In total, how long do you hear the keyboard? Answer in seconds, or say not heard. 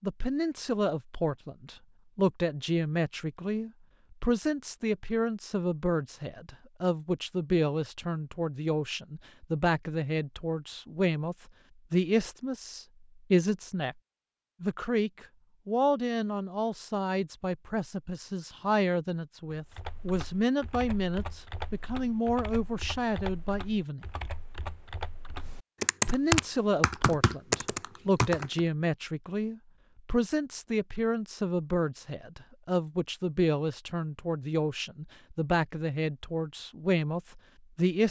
9 s.